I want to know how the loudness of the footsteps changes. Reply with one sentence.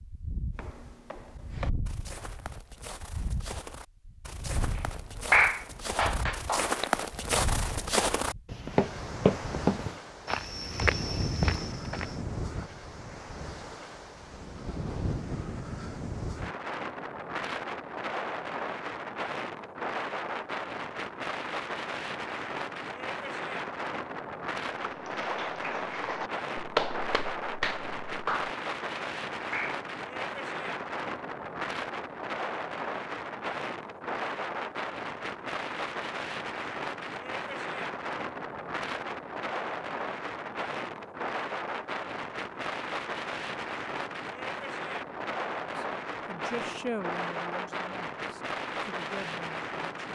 The volume of the footsteps goes up.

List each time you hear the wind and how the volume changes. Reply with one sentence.
You can hear the wind from 0.0 to 50.1 s, getting louder.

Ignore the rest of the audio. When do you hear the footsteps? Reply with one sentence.
The footsteps can be heard from 0.6 to 12.2 s.